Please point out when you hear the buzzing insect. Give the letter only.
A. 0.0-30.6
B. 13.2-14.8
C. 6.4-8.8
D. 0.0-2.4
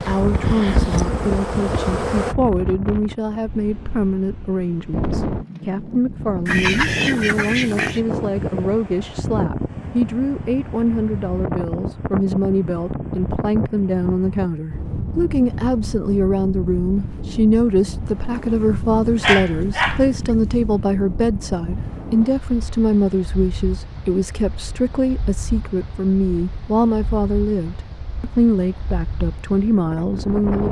D.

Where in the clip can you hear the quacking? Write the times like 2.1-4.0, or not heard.
6.5-8.0.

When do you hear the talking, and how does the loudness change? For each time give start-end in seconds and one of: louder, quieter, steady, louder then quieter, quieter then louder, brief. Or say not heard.
0.0-30.6 steady.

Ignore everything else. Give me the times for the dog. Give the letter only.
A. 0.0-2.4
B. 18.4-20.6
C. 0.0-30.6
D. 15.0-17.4
B.